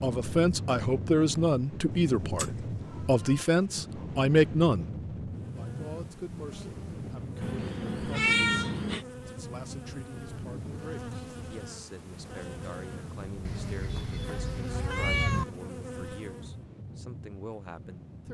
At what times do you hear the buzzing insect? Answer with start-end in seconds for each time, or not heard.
5.3-16.6.